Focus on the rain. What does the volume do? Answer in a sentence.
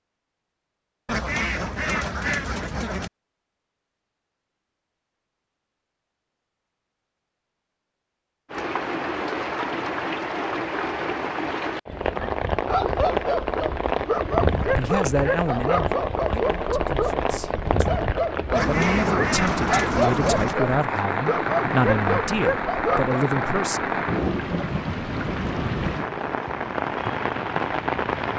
The volume of the rain stays about the same.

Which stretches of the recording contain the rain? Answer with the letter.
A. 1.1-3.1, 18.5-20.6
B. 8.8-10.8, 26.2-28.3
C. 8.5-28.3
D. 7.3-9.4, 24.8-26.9
C.